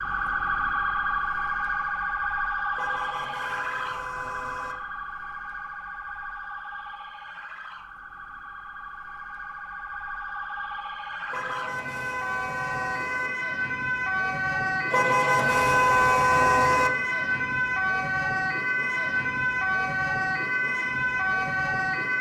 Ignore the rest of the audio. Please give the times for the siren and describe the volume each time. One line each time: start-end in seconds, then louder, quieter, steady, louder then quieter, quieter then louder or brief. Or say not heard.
0.0-22.1 quieter then louder.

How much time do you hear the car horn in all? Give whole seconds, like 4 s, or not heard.
6 s.